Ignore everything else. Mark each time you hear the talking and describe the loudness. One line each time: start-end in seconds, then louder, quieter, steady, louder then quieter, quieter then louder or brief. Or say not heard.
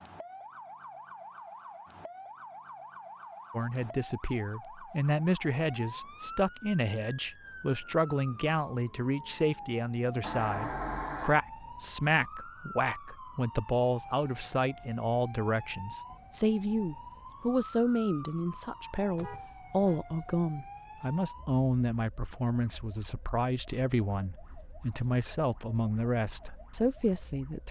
3.5-27.6 steady.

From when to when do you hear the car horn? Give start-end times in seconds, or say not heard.
10.2-11.4, 19.1-20.0.